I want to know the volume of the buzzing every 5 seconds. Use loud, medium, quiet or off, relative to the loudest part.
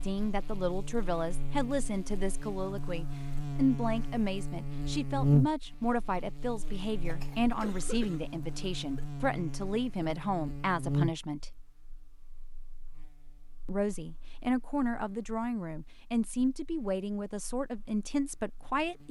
medium, loud, medium, quiet.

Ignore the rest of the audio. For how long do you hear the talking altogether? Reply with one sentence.
You can hear the talking for 17 seconds altogether.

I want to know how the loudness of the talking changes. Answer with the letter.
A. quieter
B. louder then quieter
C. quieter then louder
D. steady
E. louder
D.